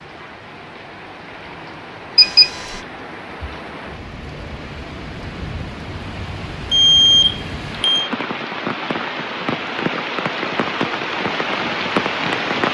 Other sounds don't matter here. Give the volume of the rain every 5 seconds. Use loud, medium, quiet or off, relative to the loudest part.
quiet, medium, loud.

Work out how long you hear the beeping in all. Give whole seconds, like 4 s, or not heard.
2 s.